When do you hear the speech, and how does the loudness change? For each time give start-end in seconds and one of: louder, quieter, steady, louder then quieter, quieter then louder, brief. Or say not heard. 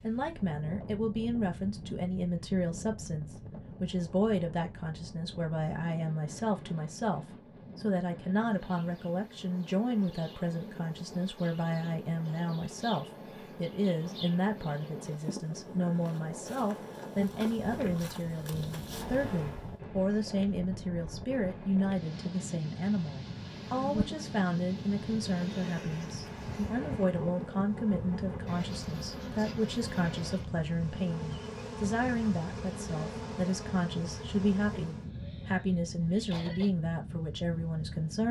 0.0-38.2 steady.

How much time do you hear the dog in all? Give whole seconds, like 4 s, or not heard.
not heard.